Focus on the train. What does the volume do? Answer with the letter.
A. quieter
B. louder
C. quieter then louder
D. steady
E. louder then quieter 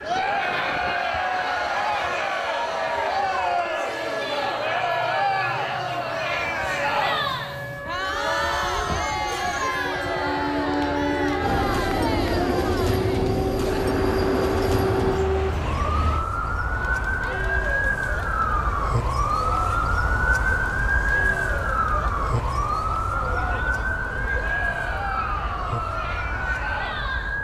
B.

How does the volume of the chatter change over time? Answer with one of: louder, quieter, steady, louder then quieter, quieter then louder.
quieter.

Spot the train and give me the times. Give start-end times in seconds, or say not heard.
0.0-16.2.